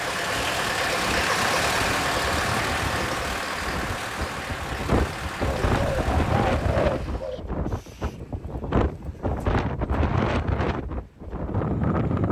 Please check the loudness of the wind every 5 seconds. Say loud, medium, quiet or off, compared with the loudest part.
medium, loud, loud.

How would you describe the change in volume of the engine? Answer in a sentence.
The loudness of the engine goes down.